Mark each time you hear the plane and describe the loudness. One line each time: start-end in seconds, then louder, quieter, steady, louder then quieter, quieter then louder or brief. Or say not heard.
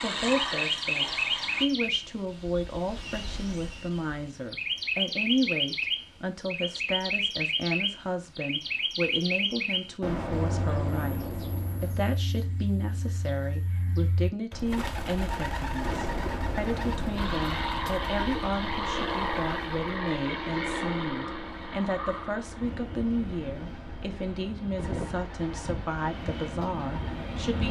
0.0-1.6 brief
17.1-27.6 quieter.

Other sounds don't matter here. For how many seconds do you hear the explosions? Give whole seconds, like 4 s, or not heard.
4 s.